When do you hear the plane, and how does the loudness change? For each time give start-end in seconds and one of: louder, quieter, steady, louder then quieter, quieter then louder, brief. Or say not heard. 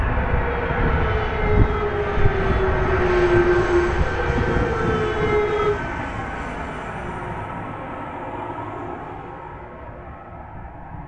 0.0-11.0 quieter.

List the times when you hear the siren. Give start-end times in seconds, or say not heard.
0.2-5.8.